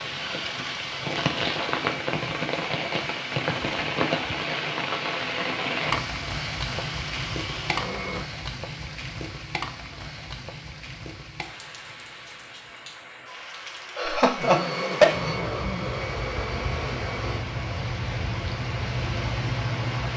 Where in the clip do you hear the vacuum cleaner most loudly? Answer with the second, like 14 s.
15 s.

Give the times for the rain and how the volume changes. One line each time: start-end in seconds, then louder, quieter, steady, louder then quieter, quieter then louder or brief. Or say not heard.
0.0-20.1 quieter then louder.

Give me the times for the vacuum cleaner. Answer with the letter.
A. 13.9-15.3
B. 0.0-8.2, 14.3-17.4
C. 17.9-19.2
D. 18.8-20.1
B.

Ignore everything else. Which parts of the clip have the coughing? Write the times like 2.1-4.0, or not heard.
13.9-15.3.